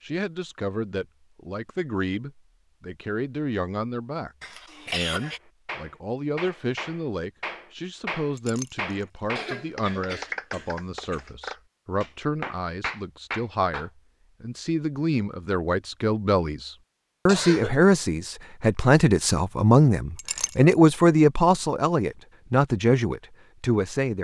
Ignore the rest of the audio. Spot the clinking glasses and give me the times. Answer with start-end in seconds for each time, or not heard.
8.3-9.1, 20.1-20.8.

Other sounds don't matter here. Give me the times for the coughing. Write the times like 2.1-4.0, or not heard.
4.4-5.4, 9.3-11.3, 17.2-17.8.